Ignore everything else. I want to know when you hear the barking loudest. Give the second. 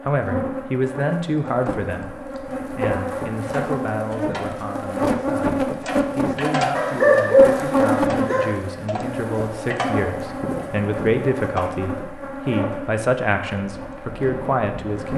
7 s.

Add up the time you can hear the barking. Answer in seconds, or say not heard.
2 s.